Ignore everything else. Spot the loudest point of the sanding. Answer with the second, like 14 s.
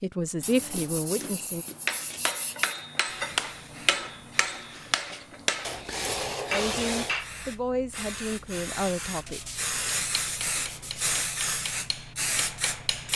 7 s.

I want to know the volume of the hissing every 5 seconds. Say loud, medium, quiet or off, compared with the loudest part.
quiet, medium, loud.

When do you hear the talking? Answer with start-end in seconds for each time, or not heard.
0.0-1.6, 6.5-9.4.